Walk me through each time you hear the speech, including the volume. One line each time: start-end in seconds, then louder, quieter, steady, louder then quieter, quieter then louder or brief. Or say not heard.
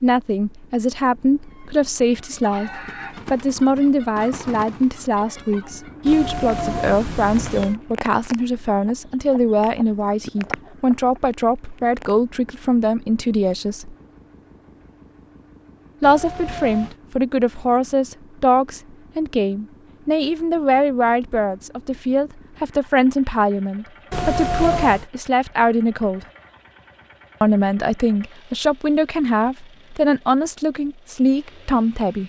0.0-13.9 steady
16.0-26.2 steady
27.4-32.2 steady.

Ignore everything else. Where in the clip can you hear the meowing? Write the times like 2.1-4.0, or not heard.
6.0-7.8, 16.0-16.9, 24.1-25.1.